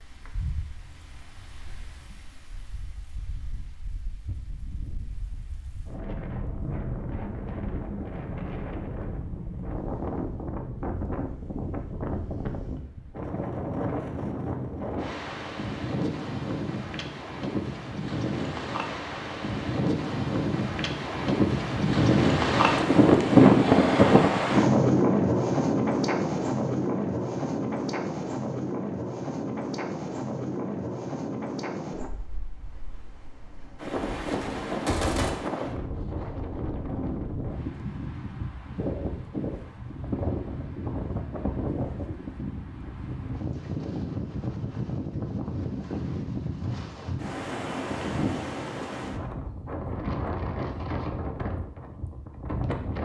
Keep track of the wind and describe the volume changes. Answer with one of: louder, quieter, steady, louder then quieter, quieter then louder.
louder then quieter.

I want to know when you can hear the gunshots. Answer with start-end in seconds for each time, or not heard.
33.9-35.3.